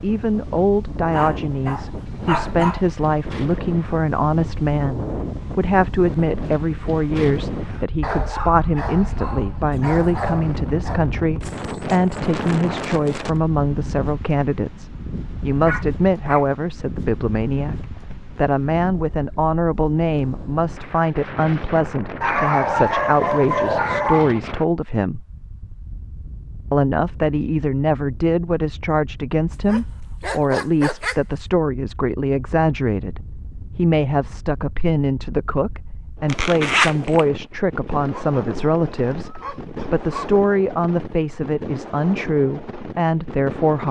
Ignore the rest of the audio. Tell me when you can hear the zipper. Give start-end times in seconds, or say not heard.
36.3-37.2.